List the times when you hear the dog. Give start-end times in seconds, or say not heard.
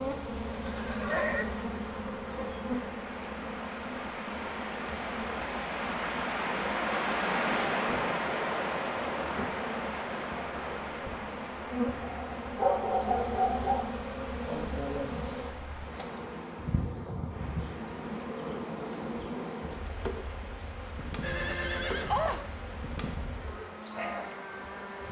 12.0-13.9.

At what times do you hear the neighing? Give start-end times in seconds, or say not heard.
0.7-1.4, 21.2-22.4.